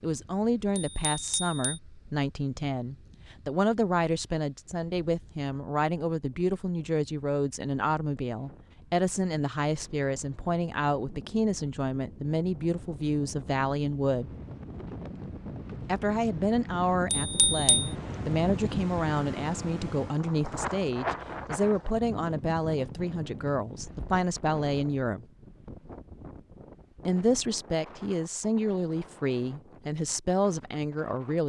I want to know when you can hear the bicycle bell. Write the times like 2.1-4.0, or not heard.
0.8-1.8, 17.1-17.9.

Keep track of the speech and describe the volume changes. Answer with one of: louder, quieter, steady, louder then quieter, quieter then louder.
steady.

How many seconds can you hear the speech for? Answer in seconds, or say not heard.
28 s.